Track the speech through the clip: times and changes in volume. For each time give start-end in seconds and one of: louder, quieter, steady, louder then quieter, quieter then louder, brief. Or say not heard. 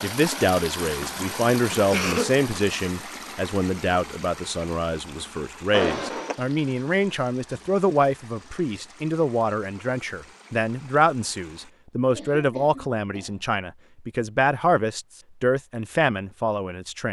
0.0-17.0 steady.